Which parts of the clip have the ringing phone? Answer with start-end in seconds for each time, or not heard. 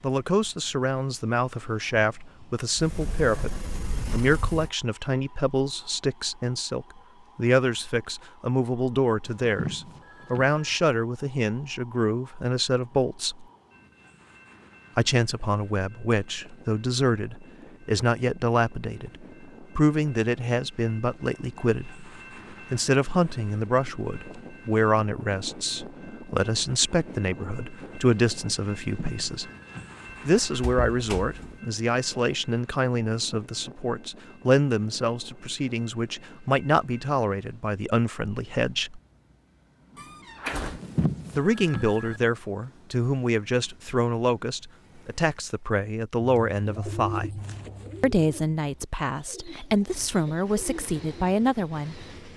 9.2-10.8, 28.9-30.0, 40.6-42.2.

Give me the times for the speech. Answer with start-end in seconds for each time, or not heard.
0.0-13.4, 14.9-29.5, 30.2-39.0, 41.4-47.3, 48.0-52.0.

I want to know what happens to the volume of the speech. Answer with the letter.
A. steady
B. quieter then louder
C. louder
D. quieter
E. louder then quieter
A.